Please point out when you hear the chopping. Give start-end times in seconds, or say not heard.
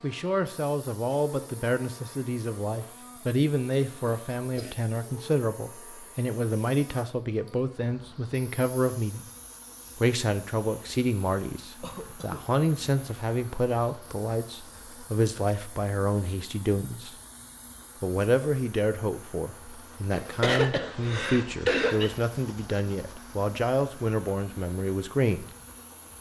not heard.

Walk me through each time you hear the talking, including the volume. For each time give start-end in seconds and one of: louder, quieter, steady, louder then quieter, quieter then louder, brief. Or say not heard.
0.0-9.2 steady
9.9-17.1 steady
18.0-25.4 steady.